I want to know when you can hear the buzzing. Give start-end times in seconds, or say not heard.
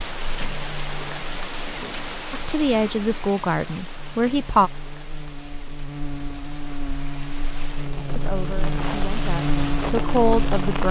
0.0-10.8.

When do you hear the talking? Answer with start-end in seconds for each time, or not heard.
2.3-4.7, 8.2-10.8.